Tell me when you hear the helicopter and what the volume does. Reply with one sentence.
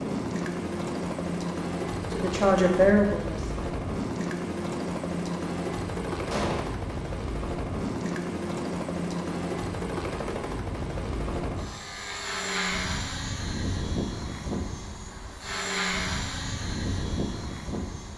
You can hear the helicopter from 0.0 to 18.1 s, at a steady volume.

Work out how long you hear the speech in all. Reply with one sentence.
You can hear the speech for 2 seconds altogether.